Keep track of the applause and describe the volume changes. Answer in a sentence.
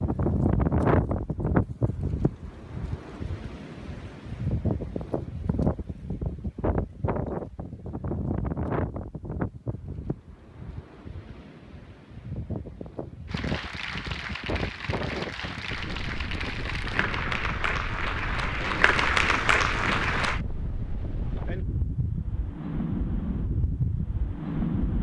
The volume of the applause goes up.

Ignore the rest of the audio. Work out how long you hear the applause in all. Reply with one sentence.
You can hear the applause for 7 seconds altogether.